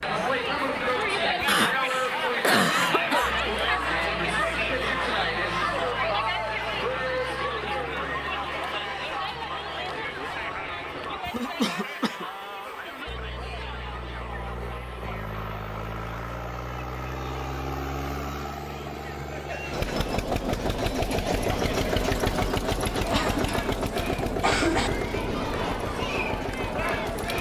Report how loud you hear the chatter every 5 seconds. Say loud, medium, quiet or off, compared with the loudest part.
loud, loud, medium, quiet, medium, medium.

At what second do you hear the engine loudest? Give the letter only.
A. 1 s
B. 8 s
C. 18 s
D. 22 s
D.